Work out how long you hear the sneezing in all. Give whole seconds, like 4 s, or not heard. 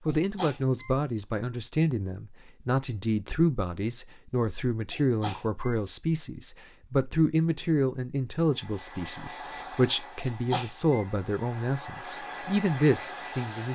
3 s.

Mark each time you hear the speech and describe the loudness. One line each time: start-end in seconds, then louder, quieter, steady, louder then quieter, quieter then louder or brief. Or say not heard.
0.1-13.7 steady.